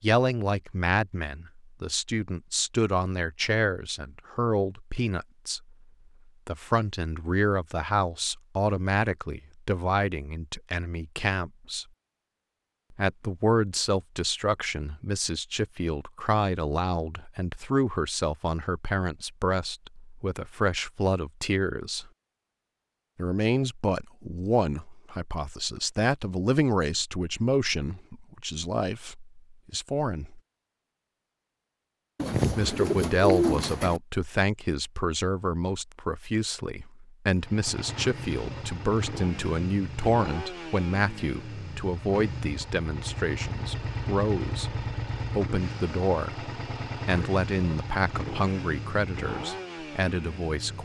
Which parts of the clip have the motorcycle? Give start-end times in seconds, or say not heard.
37.4-50.8.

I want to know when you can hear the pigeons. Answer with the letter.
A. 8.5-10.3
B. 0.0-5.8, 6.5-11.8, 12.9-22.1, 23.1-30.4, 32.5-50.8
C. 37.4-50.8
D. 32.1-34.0
D.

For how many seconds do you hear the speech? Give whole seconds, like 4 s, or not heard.
46 s.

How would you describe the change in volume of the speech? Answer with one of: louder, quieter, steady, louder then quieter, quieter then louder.
steady.